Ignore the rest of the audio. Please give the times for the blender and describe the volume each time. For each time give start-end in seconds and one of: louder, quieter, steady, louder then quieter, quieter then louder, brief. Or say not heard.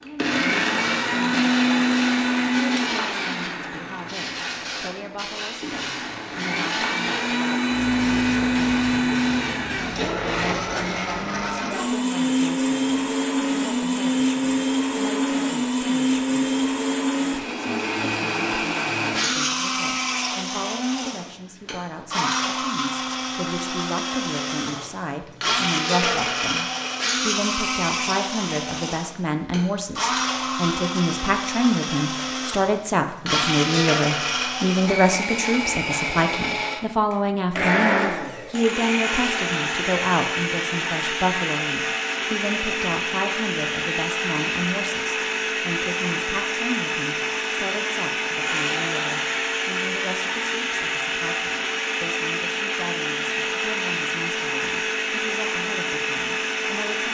0.0-57.0 steady.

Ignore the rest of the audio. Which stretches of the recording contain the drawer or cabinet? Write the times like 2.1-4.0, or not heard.
not heard.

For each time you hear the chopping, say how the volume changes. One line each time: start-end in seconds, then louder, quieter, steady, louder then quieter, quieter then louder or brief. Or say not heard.
not heard.